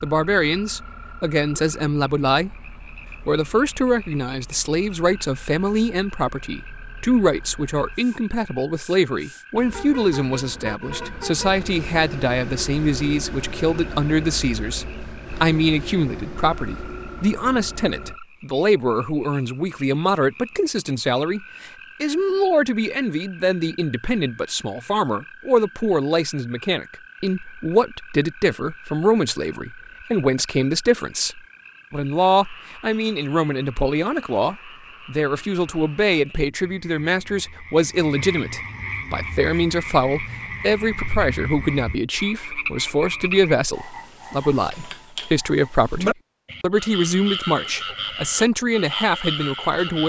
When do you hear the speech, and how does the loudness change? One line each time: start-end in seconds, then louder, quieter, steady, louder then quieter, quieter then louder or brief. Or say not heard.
0.0-2.5 brief
3.2-50.0 steady.